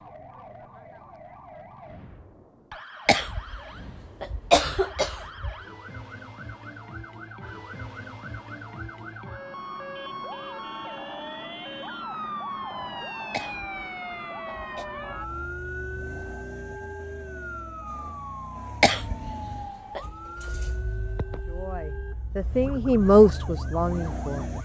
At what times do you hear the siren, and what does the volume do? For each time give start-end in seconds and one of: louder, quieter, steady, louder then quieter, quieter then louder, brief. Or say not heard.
0.0-24.6 louder then quieter.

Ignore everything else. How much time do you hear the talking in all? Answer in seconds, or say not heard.
3 s.